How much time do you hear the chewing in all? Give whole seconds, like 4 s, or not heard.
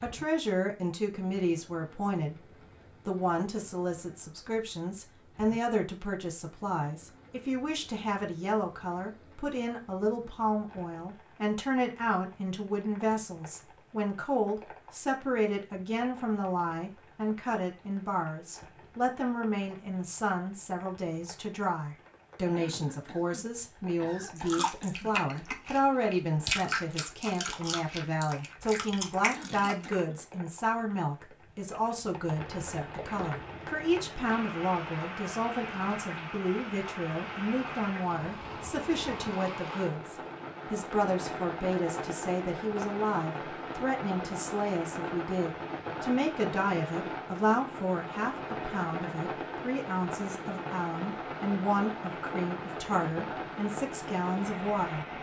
6 s.